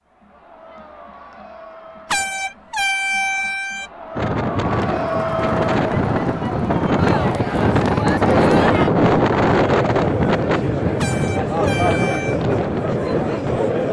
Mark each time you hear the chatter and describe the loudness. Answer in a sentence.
The chatter can be heard from 0.1 to 13.8 s, getting louder.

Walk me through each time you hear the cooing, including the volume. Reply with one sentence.
You can't hear the cooing here.